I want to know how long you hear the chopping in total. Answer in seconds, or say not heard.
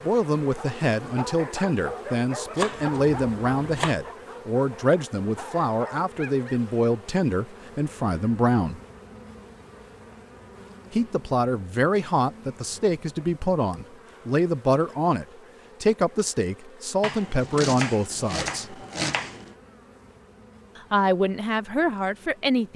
4 s.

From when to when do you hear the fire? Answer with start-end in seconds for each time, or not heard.
not heard.